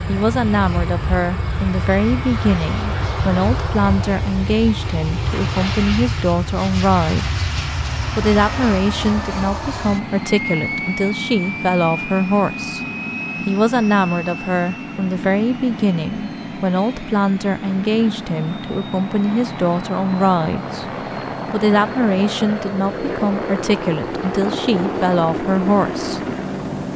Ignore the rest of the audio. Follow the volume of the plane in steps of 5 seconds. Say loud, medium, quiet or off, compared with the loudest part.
loud, loud, loud, medium, loud, loud.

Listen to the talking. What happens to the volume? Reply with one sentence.
The volume of the talking stays about the same.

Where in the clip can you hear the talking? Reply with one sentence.
You can hear the talking from 0.1 to 7.5 s, from 8.2 to 12.8 s, from 13.4 to 20.9 s and from 21.5 to 26.2 s.